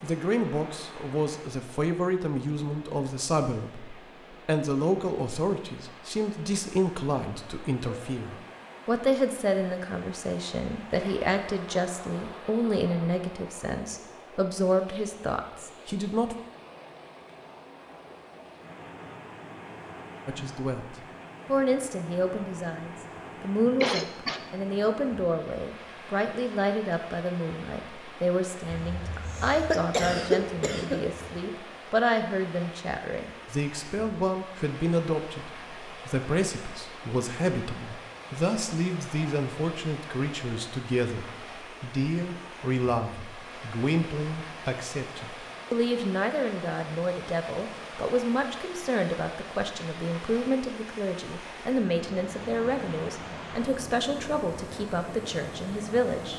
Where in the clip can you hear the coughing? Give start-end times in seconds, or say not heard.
23.8-24.4, 28.7-31.3.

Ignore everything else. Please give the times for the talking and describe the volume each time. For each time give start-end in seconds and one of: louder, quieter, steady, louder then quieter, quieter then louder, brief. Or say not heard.
0.0-16.4 steady
20.2-56.3 steady.